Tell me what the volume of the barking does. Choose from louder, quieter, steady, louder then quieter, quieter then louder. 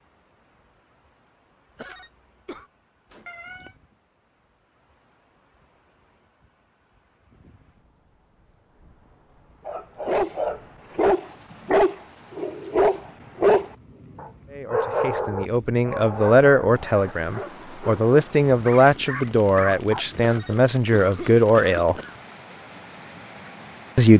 quieter.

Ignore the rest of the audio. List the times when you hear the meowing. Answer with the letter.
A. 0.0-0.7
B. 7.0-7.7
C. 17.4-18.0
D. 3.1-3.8
D.